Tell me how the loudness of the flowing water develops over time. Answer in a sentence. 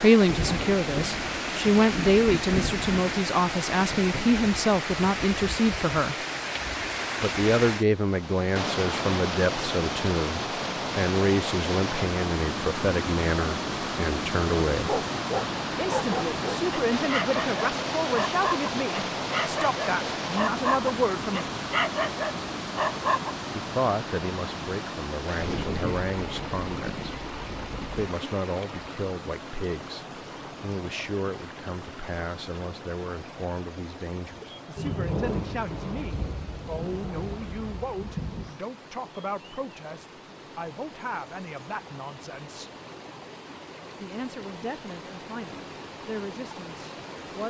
The volume of the flowing water goes down.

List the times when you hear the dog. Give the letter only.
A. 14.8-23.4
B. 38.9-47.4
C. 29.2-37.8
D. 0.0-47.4
A.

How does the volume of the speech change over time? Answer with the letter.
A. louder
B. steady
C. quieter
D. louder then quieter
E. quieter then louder
C.